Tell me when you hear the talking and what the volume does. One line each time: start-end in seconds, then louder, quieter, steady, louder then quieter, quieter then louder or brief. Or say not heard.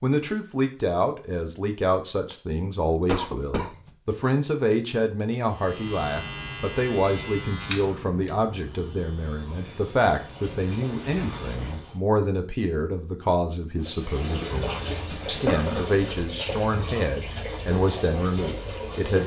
0.0-19.2 steady.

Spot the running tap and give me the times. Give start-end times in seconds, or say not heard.
9.2-11.9, 13.8-19.2.